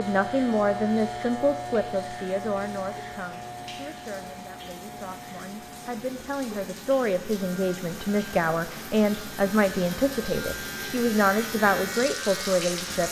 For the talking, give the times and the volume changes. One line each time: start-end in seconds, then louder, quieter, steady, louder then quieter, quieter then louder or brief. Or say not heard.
0.0-13.0 quieter then louder.